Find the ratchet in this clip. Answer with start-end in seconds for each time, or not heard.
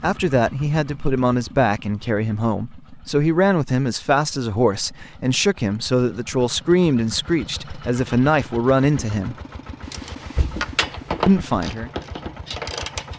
9.9-13.1.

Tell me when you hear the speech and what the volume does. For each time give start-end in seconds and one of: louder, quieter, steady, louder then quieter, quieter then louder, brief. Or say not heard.
0.0-9.3 steady
11.2-11.9 brief.